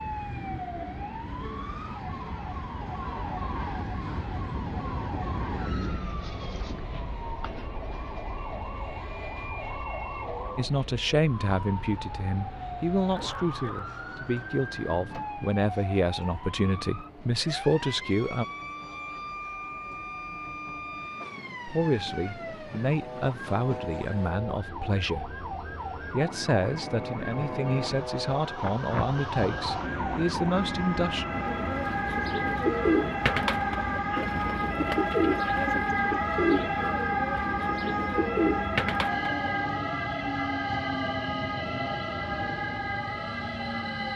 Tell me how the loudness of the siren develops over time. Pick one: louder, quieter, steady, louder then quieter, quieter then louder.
louder.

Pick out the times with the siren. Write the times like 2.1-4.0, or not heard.
0.0-44.1.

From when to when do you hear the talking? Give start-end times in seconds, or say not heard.
10.6-18.4, 21.6-31.2.